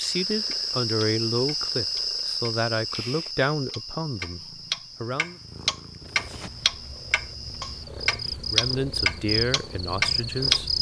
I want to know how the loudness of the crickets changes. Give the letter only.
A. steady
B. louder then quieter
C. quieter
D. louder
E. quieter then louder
E.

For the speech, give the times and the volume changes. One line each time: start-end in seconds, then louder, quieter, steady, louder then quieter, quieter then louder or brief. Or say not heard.
0.0-5.4 quieter
8.5-10.7 brief.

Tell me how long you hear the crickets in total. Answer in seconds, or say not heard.
11 s.